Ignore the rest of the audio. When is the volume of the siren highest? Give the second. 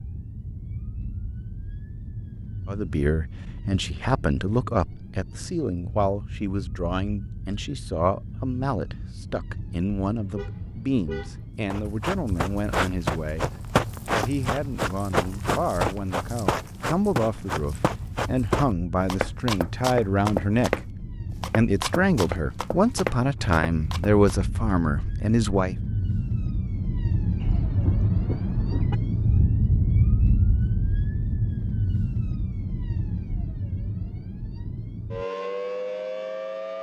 30 s.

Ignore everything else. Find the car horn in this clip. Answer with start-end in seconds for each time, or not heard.
10.2-11.6, 27.4-28.9.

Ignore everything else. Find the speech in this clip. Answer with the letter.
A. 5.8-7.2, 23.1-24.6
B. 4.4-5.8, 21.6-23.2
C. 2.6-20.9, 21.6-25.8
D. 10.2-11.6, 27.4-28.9
C.